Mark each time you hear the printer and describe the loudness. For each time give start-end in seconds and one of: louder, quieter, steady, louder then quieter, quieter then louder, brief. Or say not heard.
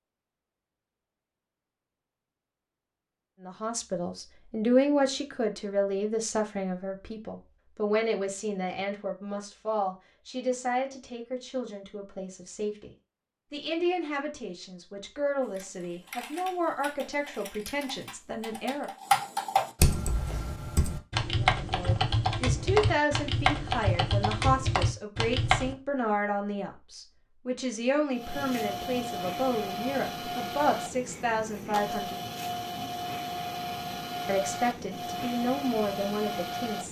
28.1-36.8 steady.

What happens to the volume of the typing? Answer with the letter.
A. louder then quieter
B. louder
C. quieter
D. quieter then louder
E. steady
B.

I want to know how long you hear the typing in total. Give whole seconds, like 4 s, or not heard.
10 s.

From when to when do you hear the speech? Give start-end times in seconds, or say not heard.
3.5-12.9, 13.5-18.9, 21.5-32.1, 34.2-36.8.